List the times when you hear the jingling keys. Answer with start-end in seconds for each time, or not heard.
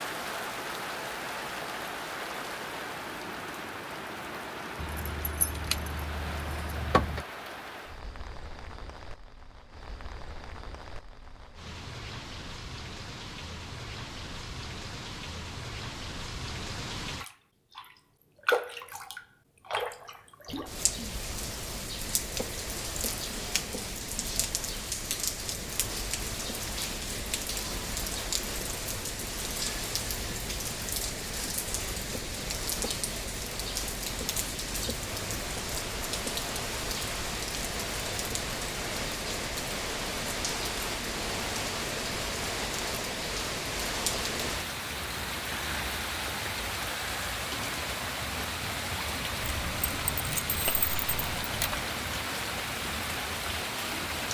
4.8-7.2, 49.5-51.9.